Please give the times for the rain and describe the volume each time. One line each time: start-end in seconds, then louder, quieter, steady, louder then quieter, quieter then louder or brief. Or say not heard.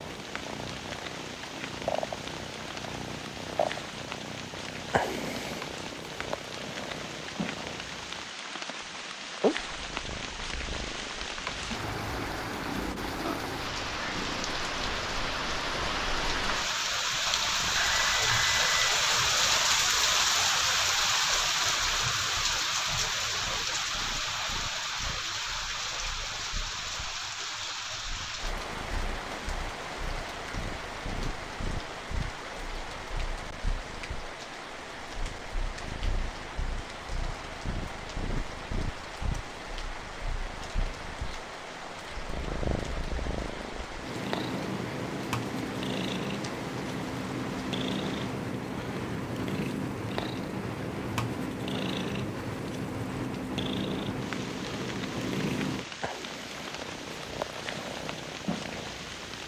0.0-59.4 louder then quieter.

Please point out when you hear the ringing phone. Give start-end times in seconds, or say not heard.
17.8-18.9.